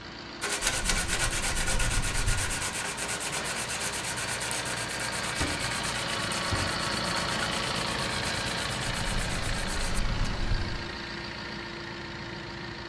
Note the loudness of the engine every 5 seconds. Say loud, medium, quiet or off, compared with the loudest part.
medium, loud, medium.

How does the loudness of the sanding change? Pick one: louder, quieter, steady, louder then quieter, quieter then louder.
quieter.